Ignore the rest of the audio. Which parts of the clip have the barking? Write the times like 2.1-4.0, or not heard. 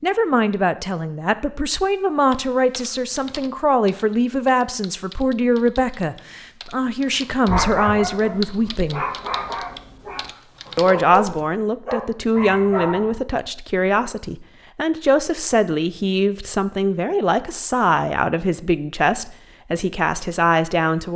7.5-13.2.